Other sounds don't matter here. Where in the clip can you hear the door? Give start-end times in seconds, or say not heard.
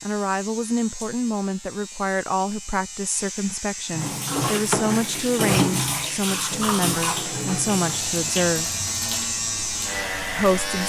not heard.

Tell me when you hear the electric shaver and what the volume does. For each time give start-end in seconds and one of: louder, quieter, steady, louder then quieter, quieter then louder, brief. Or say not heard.
0.0-10.8 louder.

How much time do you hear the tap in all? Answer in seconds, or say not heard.
7 s.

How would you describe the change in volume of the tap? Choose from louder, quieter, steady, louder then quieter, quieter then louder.
quieter.